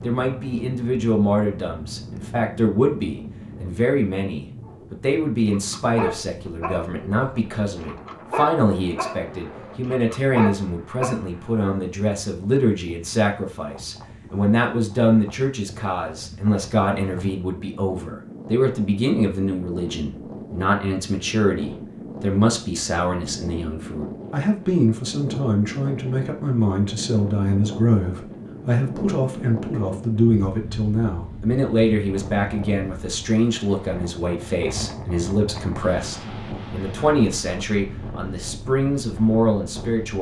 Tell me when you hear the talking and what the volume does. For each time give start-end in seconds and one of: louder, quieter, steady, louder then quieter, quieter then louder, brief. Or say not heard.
0.0-40.1 steady.